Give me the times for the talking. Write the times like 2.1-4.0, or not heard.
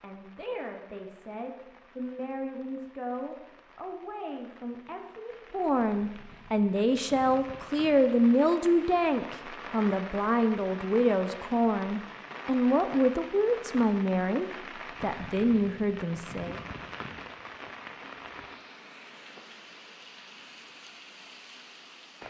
0.0-16.6.